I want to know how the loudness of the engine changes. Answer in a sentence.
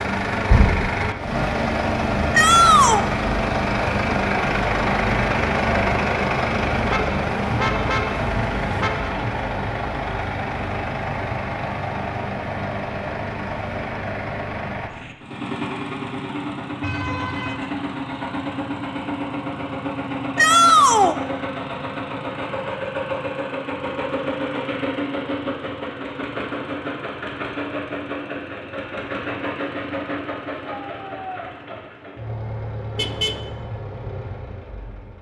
The volume of the engine goes down.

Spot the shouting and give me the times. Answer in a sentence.
You can hear the shouting from 2.3 to 3.0 s, from 20.4 to 21.1 s and from 30.6 to 31.5 s.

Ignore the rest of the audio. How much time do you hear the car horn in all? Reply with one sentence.
The car horn can be heard for 4 seconds in total.